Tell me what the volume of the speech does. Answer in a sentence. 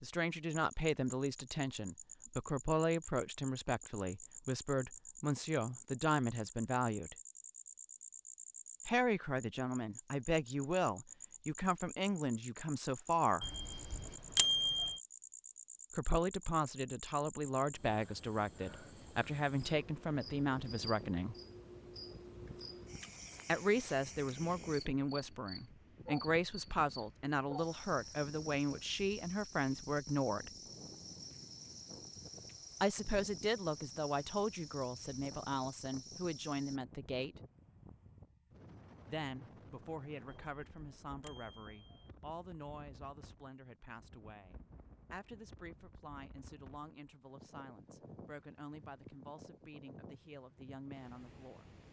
The volume of the speech goes down.